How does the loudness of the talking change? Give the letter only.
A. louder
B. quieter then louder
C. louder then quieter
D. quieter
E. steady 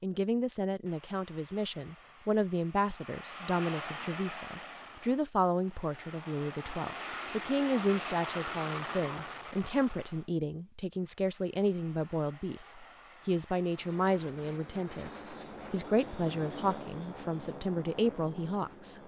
E.